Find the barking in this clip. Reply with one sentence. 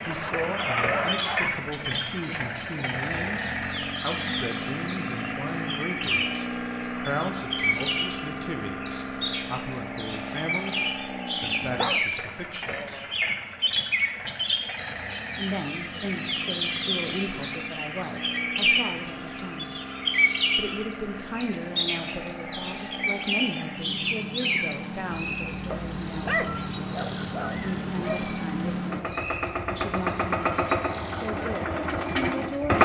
You can hear the barking from 0.1 to 1.6 s, from 11.6 to 12.1 s and from 25.7 to 28.3 s.